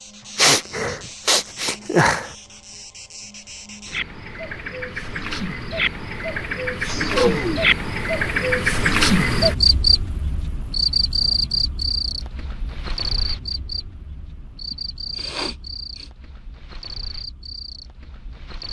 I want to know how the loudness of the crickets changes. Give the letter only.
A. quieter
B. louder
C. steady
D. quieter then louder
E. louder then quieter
E.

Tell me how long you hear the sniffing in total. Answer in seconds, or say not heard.
4 s.